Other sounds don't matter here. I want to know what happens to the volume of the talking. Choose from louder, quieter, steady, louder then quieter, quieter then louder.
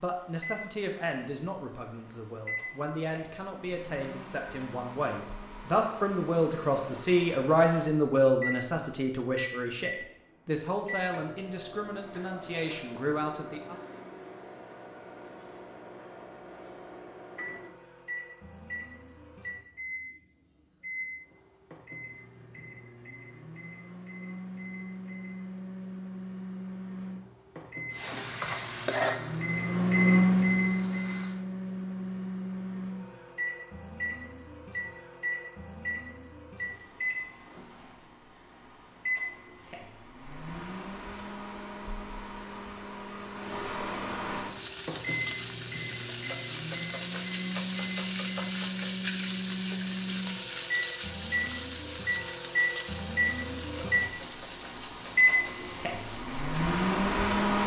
louder then quieter.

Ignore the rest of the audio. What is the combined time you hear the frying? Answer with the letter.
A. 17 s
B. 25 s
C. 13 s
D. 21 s
A.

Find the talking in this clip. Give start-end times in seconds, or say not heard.
0.0-13.8.